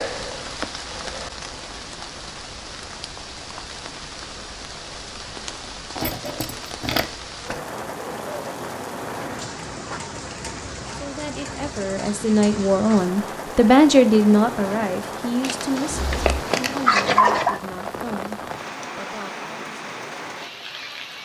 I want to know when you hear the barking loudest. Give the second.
17 s.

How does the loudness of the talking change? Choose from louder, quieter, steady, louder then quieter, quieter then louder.
louder then quieter.